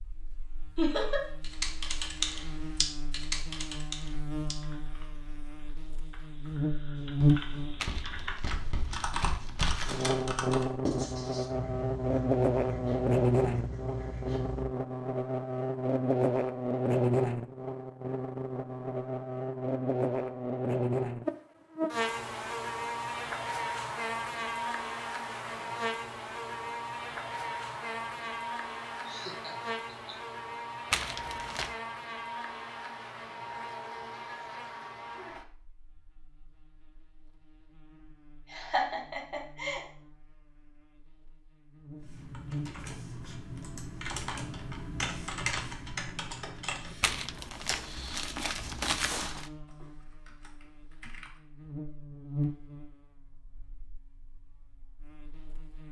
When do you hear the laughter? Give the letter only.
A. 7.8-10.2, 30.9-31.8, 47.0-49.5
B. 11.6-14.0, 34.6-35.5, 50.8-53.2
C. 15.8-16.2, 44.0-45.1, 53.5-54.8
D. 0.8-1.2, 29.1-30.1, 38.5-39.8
D.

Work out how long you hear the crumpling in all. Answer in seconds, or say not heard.
6 s.